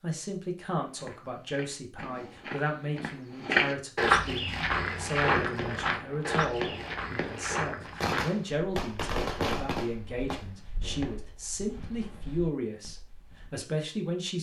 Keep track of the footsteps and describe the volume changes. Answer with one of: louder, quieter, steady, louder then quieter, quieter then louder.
louder then quieter.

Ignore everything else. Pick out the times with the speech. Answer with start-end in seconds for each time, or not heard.
0.0-14.3.